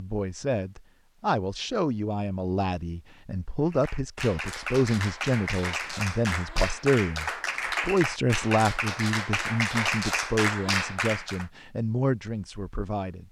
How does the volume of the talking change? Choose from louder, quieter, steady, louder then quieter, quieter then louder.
steady.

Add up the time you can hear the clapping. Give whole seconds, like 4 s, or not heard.
8 s.